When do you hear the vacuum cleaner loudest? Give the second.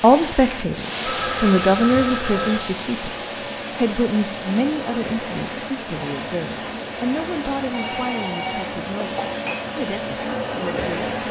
11 s.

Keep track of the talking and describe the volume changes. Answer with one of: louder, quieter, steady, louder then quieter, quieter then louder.
quieter.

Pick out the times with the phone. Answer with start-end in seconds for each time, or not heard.
1.0-2.6, 7.7-9.7.